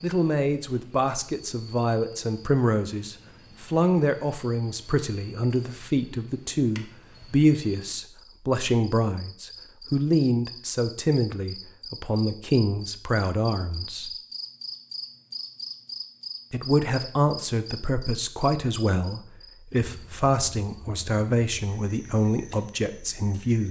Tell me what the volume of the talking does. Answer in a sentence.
The volume of the talking stays about the same.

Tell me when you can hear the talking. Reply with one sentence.
You can hear the talking from 0.0 to 14.2 s and from 16.5 to 23.6 s.